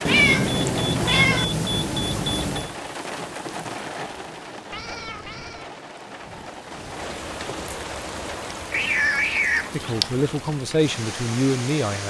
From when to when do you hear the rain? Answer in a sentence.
You can hear the rain from 0.0 to 12.0 s.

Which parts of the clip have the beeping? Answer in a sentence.
You can hear the beeping from 0.1 to 2.8 s.